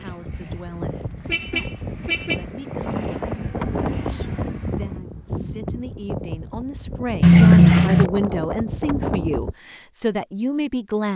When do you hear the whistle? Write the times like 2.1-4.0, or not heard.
not heard.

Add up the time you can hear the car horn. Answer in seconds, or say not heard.
3 s.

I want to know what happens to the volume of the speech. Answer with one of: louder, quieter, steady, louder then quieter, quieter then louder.
louder.